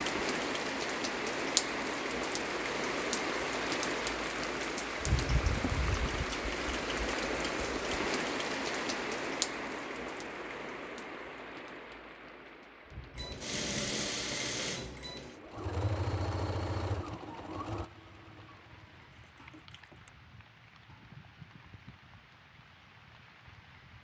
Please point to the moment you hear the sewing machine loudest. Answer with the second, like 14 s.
14 s.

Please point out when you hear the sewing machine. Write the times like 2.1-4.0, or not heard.
13.2-20.1.